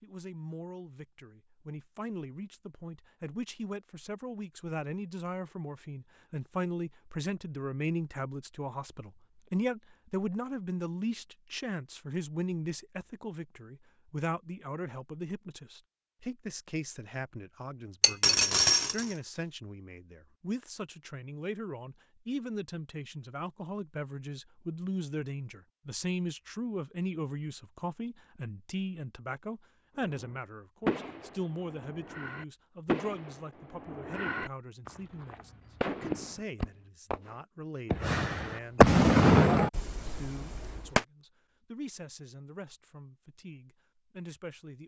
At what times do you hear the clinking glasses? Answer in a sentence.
The clinking glasses can be heard from 18.0 to 19.1 s.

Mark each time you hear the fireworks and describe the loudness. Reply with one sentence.
You can hear the fireworks from 30.0 to 41.0 s, getting louder.